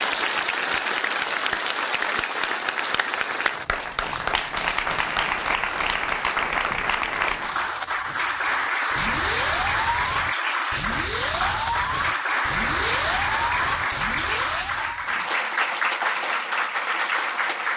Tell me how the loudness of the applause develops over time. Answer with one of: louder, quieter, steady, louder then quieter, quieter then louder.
steady.